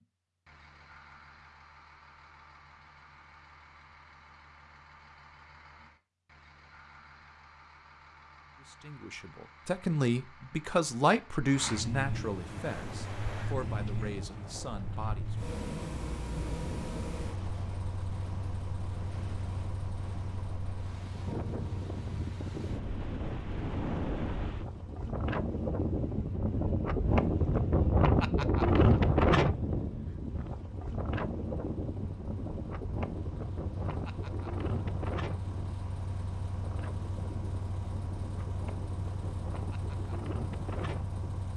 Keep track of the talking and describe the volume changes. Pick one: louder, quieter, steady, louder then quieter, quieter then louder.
quieter.